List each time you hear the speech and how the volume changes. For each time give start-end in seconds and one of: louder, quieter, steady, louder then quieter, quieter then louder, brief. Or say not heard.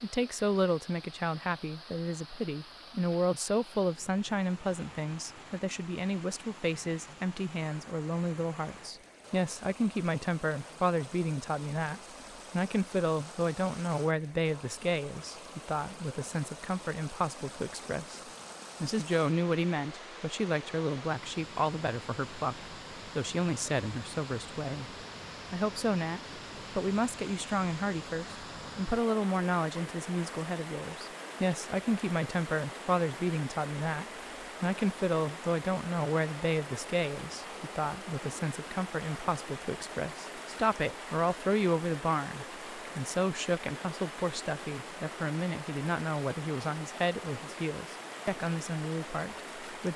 0.0-49.9 steady.